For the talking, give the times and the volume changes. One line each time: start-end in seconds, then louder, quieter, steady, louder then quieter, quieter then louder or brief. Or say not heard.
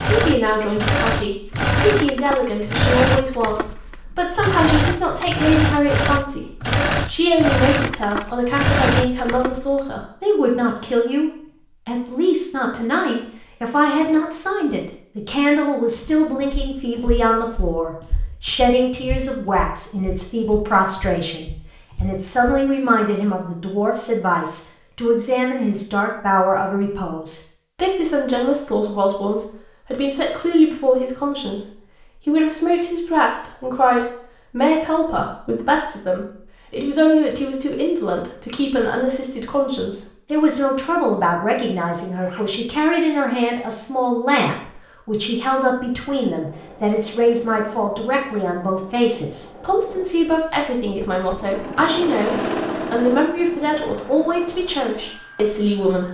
0.1-6.5 steady
7.0-31.6 steady
32.2-56.0 steady.